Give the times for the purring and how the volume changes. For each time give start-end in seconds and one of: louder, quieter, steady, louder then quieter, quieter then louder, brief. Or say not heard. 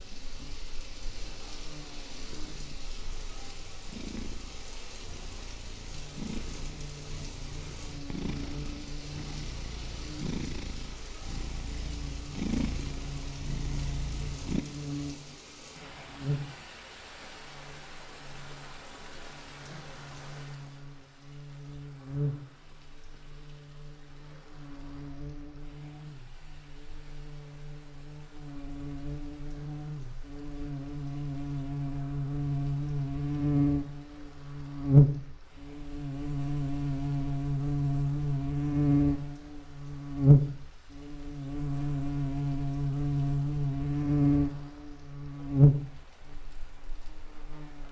0.0-14.7 louder.